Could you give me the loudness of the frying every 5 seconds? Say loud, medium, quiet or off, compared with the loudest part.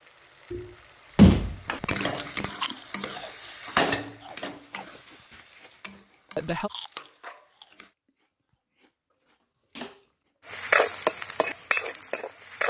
medium, quiet, loud.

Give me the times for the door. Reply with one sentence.
You can hear the door from 1.1 to 2.5 s.